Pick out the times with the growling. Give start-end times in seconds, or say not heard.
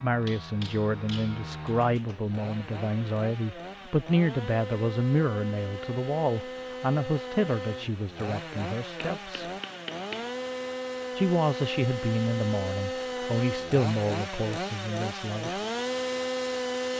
not heard.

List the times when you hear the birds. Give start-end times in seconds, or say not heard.
not heard.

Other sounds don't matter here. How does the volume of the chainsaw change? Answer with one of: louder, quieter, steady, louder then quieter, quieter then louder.
louder.